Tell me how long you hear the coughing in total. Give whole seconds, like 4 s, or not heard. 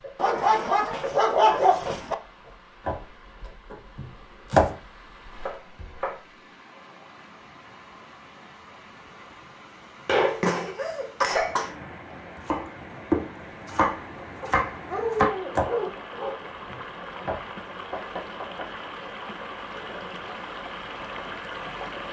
2 s.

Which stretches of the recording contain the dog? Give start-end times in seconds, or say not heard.
0.1-2.1, 14.4-16.4.